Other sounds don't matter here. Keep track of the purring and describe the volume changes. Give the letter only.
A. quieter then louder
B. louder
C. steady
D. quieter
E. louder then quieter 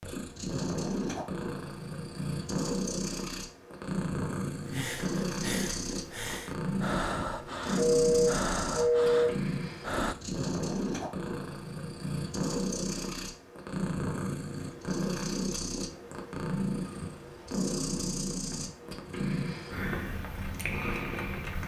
C.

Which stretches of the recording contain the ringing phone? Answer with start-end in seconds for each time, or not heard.
7.8-9.3.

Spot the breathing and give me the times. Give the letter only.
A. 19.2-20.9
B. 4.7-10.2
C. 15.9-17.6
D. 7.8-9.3
B.